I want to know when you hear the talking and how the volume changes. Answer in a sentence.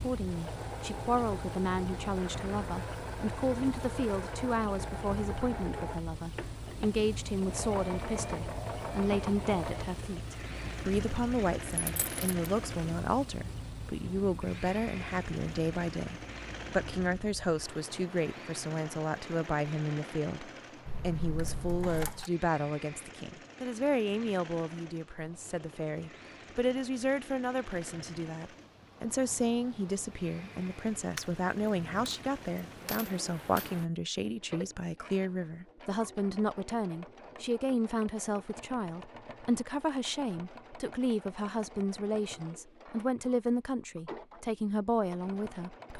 You can hear the talking from 0.0 to 45.9 s, at a steady volume.